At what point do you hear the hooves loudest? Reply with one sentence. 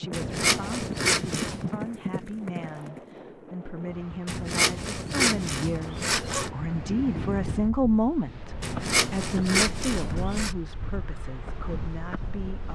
The loudest moment of the hooves is at 2 seconds.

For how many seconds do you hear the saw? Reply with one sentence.
You can hear the saw for 6 seconds altogether.